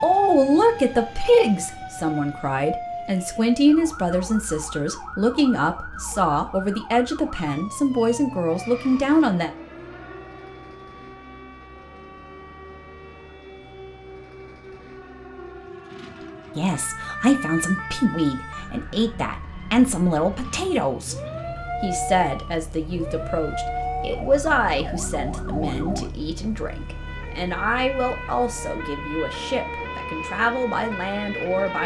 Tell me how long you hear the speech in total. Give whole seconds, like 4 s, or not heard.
24 s.